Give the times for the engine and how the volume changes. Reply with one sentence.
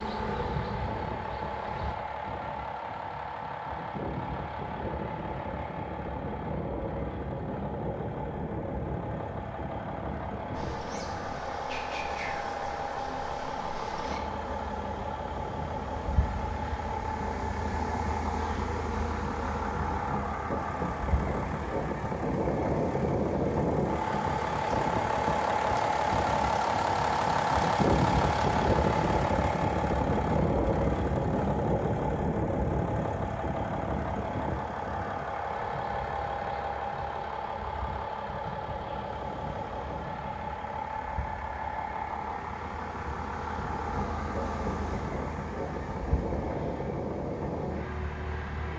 The engine can be heard from 0.0 to 48.7 s, getting louder then quieter.